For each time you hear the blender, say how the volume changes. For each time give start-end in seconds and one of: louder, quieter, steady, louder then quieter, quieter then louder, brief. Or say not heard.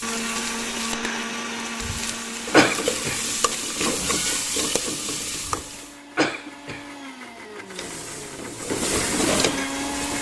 0.0-10.1 quieter then louder.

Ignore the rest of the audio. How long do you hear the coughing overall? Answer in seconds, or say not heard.
3 s.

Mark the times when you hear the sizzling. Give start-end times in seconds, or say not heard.
0.0-6.0, 7.7-10.1.